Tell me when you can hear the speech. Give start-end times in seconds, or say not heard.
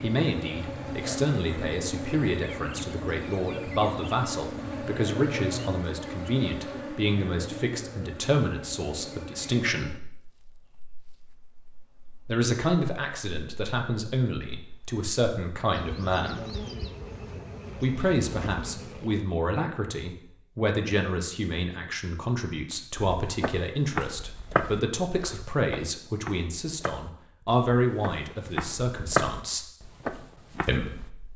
0.0-9.9, 12.2-16.4, 17.8-29.7, 30.6-31.3.